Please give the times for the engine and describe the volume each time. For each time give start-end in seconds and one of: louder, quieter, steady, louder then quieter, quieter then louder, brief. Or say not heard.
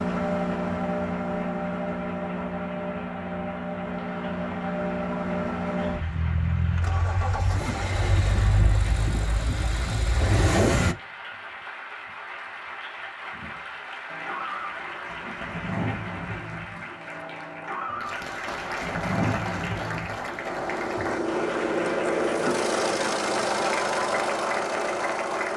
0.0-10.9 steady
14.1-25.5 louder.